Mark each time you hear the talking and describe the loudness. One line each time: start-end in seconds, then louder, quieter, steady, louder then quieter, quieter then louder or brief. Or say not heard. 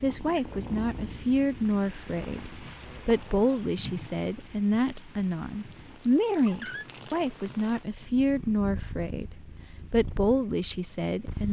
0.0-11.4 steady.